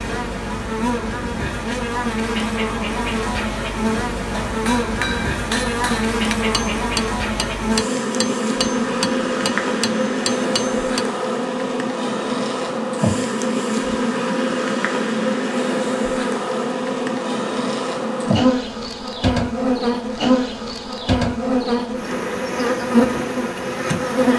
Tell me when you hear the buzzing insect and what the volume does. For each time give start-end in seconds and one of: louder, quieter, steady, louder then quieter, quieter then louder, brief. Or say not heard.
0.0-24.3 steady.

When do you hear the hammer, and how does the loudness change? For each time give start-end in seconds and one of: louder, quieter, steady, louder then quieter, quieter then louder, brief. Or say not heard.
4.3-11.1 steady.